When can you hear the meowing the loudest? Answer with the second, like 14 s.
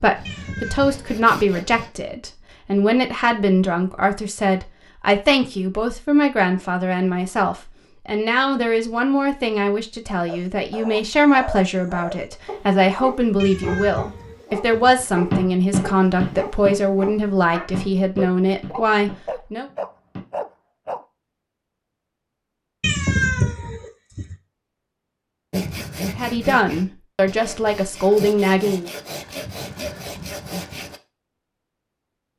23 s.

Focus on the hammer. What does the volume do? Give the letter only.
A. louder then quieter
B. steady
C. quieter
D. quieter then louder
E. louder
C.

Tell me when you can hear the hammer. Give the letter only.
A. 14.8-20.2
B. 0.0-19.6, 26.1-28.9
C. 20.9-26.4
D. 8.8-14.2
A.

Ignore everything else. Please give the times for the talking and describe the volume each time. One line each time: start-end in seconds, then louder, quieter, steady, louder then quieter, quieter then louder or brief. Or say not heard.
0.0-19.6 steady
26.1-28.9 brief.